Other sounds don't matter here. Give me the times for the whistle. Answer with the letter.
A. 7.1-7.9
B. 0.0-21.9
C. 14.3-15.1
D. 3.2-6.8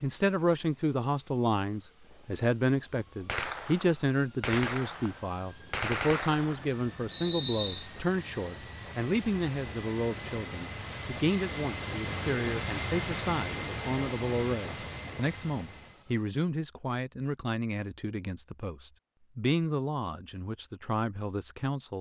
A.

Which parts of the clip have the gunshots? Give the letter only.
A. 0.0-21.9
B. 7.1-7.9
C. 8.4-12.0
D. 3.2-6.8
D.